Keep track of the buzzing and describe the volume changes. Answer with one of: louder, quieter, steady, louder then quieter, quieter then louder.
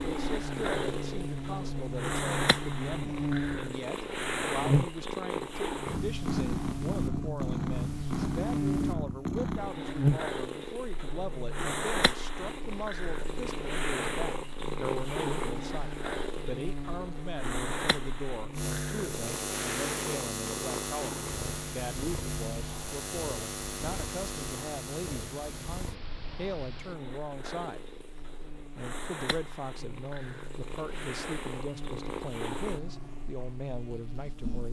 quieter.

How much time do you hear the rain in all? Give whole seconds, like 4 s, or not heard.
not heard.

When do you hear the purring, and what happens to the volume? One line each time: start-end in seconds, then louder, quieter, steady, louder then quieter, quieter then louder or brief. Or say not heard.
0.0-34.6 quieter.